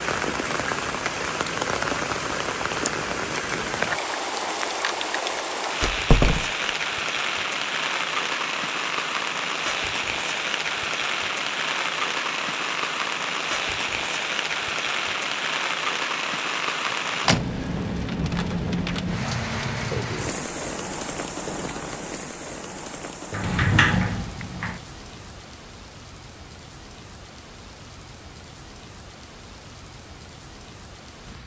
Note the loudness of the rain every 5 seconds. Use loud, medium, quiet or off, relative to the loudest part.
loud, loud, loud, loud, medium, quiet, quiet.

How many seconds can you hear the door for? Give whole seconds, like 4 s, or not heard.
3 s.